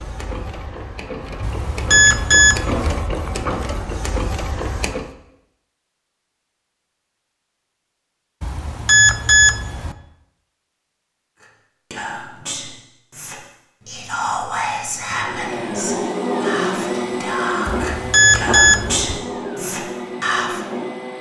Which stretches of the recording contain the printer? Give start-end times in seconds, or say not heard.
0.0-5.2, 15.1-21.1.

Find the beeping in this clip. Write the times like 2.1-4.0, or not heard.
1.4-3.0, 8.4-9.9, 17.6-19.2.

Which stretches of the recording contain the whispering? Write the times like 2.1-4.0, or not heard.
11.4-20.6.